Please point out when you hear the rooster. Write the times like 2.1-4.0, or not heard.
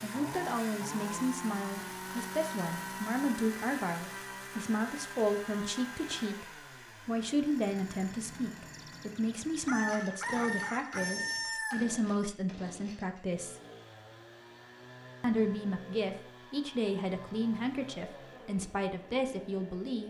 8.7-12.0.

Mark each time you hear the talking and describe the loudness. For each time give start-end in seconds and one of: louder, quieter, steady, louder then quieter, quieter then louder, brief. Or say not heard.
0.0-13.6 steady
15.2-20.0 steady.